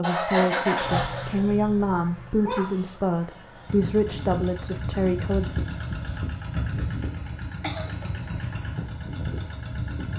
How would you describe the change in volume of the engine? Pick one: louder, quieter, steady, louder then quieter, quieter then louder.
quieter then louder.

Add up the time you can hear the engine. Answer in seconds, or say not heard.
10 s.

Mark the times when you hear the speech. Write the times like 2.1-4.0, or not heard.
0.0-5.5.